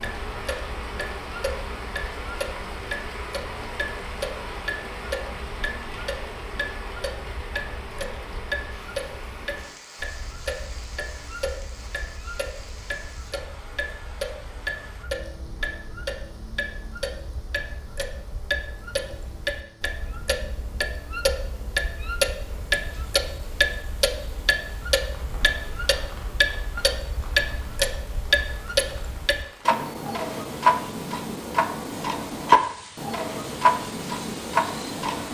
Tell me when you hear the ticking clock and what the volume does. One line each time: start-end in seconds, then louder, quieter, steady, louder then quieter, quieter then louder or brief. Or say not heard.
0.0-35.2 louder.